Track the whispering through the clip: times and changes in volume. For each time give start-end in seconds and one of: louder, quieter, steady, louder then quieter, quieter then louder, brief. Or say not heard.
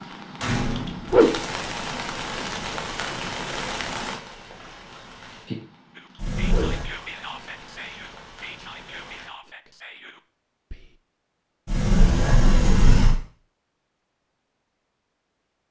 6.0-11.0 quieter.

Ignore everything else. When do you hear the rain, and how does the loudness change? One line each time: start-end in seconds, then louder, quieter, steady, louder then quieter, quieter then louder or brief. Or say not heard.
0.0-9.3 quieter.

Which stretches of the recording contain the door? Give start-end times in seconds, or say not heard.
0.4-1.2, 6.2-6.9, 11.7-13.2.